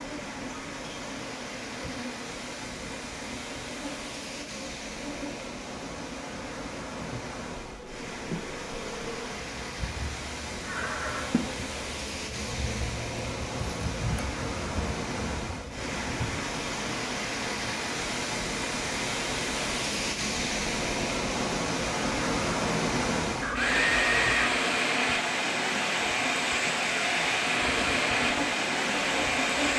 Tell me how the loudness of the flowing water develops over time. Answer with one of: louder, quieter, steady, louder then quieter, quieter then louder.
louder.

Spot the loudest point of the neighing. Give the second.
24 s.